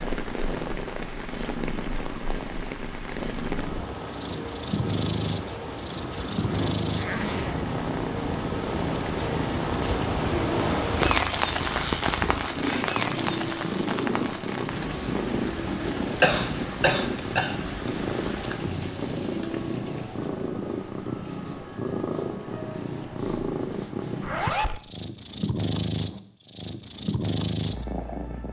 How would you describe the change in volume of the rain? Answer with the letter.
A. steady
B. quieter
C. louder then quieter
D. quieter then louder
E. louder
C.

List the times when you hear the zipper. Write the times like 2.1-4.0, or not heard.
6.0-7.7, 11.7-13.0, 24.2-24.8.